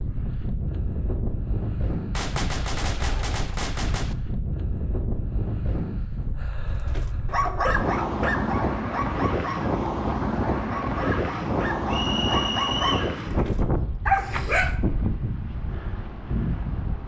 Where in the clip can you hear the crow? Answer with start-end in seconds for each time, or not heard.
not heard.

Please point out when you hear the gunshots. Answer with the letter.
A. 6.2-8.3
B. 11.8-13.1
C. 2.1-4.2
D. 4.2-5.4
C.